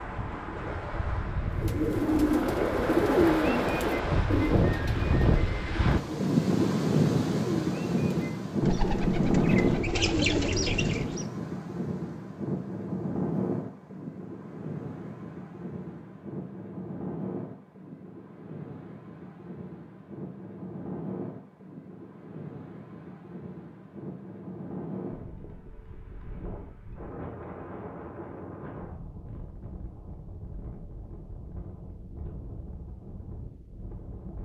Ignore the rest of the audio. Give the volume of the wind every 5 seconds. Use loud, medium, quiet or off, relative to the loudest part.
medium, loud, medium, quiet, quiet, quiet, quiet.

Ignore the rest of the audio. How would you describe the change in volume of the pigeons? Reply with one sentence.
The loudness of the pigeons goes down, then up.